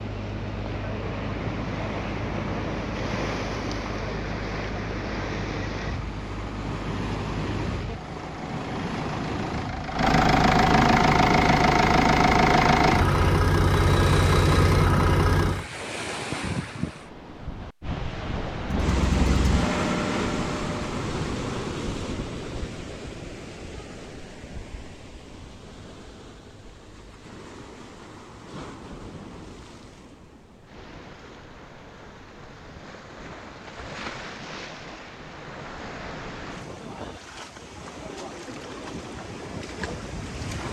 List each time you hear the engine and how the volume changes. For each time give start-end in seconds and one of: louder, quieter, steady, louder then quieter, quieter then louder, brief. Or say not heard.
0.0-15.7 louder
18.6-21.0 brief.